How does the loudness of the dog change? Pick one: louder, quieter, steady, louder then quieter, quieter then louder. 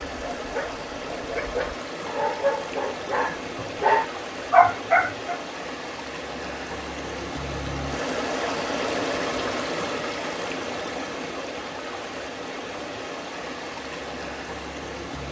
louder.